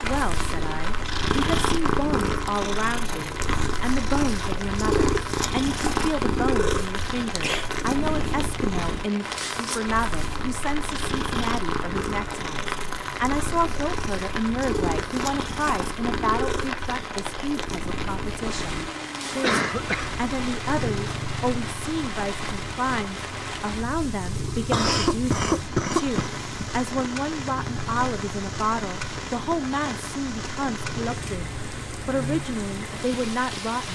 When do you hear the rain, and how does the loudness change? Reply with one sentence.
You can hear the rain from 0.0 to 33.8 s, at a steady volume.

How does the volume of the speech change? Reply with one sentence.
The loudness of the speech stays about the same.